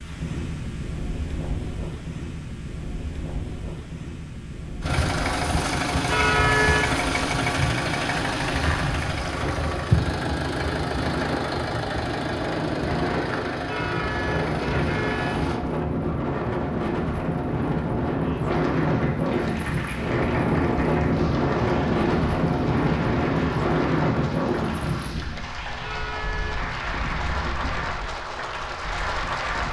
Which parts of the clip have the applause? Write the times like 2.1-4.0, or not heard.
18.3-29.6.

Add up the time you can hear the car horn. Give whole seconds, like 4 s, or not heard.
3 s.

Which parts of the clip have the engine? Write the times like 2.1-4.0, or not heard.
4.8-15.6.